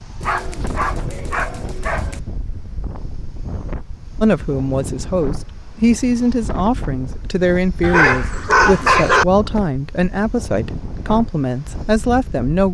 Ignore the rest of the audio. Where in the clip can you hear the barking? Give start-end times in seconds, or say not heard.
0.2-2.2, 7.8-9.2.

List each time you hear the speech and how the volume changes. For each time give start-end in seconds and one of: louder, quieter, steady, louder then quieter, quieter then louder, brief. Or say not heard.
4.2-12.6 steady.